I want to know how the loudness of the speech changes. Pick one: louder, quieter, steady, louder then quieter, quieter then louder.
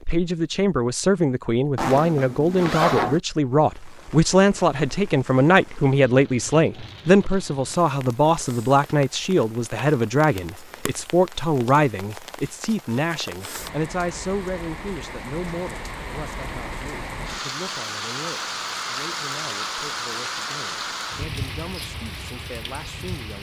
quieter.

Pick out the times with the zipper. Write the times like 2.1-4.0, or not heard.
1.8-3.2.